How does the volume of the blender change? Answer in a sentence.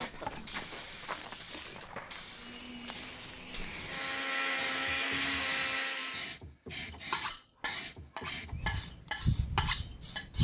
The volume of the blender goes up.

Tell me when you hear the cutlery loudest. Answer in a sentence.
The volume of the cutlery peaks at 10 seconds.